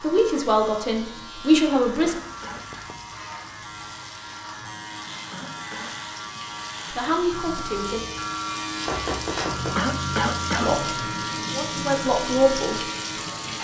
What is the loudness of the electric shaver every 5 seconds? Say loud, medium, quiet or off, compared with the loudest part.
medium, loud, loud.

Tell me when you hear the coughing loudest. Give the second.
10 s.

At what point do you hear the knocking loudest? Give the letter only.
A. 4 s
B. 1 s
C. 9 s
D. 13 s
C.